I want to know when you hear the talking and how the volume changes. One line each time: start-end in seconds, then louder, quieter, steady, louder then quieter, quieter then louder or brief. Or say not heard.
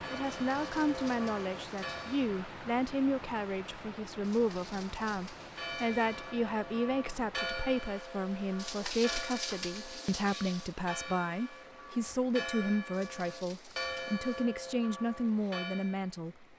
0.1-16.4 steady.